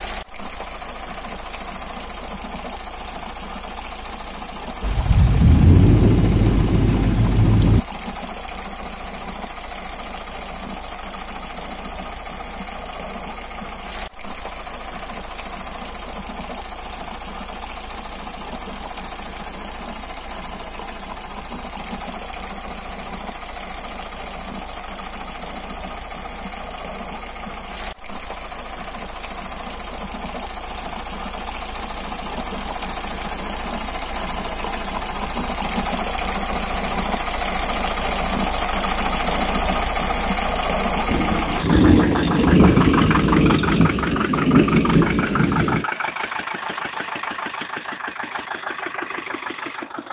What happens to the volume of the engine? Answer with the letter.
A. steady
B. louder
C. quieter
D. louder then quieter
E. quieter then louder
B.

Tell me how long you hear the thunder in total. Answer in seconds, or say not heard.
8 s.